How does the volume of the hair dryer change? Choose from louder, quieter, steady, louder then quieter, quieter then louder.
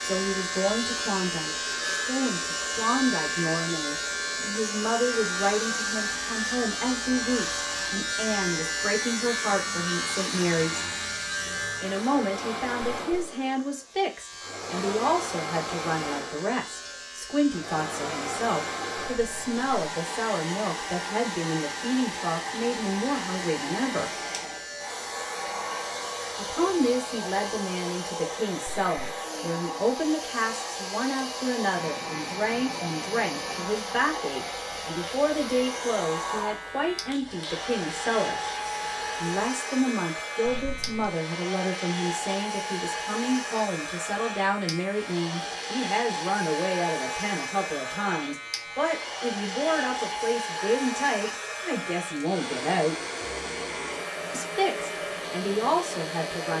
louder.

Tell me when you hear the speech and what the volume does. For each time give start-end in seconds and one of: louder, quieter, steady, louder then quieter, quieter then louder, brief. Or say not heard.
0.0-10.8 steady
11.8-24.1 steady
26.4-38.4 steady
39.2-53.0 steady
54.3-56.5 brief.